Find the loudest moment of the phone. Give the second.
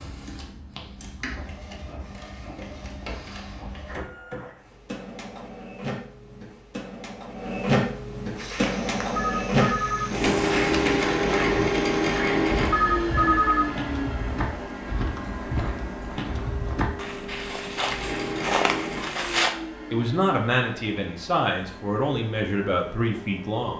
13 s.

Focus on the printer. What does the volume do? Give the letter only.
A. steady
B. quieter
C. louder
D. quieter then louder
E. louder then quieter
E.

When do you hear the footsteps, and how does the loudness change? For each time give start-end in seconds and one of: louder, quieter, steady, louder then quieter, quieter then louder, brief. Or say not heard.
8.3-19.6 louder.